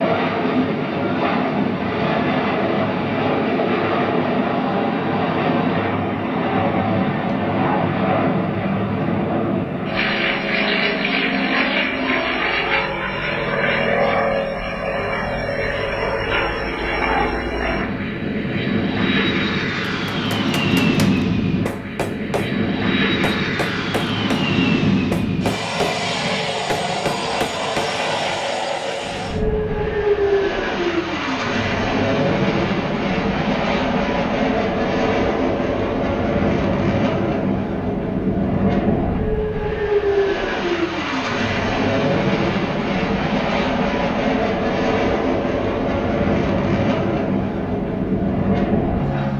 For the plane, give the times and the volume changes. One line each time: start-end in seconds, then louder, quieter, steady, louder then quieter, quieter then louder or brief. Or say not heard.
0.0-49.3 steady.